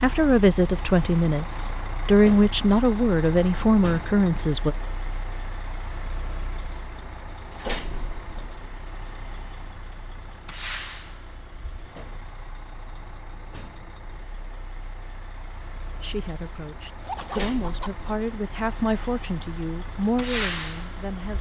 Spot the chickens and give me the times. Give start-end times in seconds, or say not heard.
16.6-17.9.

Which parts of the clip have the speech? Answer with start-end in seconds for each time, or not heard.
0.0-4.8, 16.0-21.3.